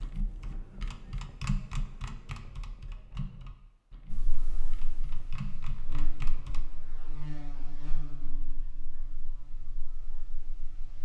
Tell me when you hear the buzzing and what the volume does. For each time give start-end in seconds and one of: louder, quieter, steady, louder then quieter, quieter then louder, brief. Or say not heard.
4.1-10.9 louder then quieter.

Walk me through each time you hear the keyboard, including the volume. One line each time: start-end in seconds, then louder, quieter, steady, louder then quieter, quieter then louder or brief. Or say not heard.
0.0-6.7 quieter then louder.